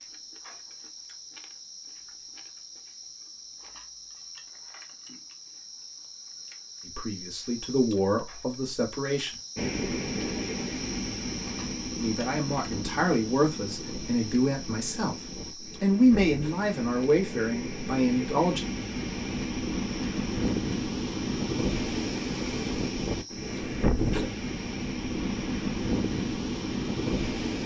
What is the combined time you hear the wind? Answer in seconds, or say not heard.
18 s.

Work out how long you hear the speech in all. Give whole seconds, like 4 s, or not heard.
9 s.